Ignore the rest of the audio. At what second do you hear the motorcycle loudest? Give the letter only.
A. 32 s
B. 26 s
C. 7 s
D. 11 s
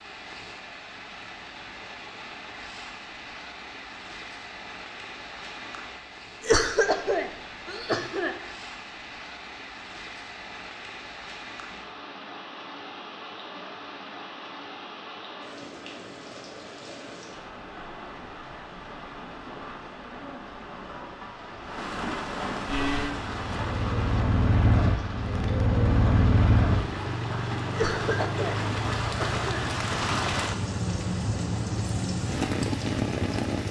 B.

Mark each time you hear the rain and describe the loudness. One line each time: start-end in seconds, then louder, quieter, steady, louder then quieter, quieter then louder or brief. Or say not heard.
0.0-33.6 louder.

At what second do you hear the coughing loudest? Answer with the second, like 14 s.
7 s.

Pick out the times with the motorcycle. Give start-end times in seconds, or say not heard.
22.6-33.6.